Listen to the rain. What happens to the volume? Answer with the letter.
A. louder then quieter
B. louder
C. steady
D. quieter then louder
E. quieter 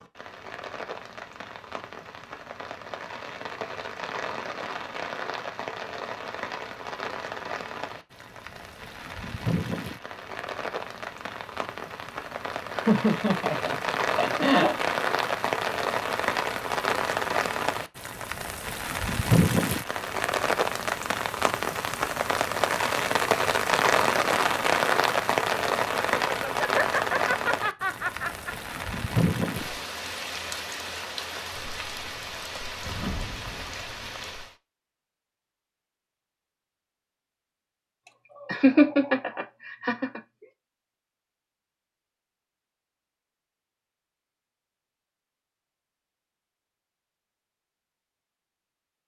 A.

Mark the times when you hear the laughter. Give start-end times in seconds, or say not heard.
12.7-14.8, 26.2-28.6, 38.0-40.2.